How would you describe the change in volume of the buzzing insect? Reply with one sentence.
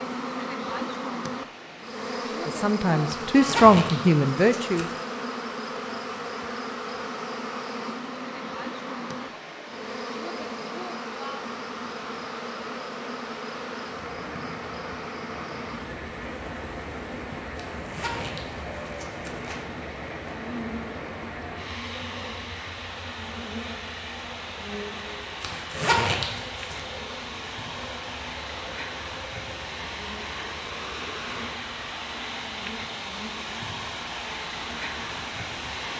The loudness of the buzzing insect goes down.